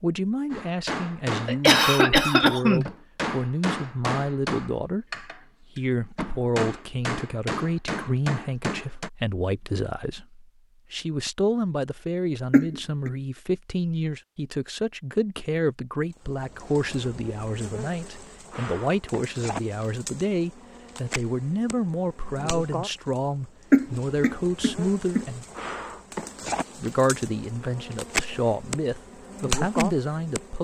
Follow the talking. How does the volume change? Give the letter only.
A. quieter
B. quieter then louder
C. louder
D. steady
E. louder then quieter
D.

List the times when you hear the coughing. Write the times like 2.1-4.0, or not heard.
1.4-2.9, 12.5-13.1, 23.7-25.2.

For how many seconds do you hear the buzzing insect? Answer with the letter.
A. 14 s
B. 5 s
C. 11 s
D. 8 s
A.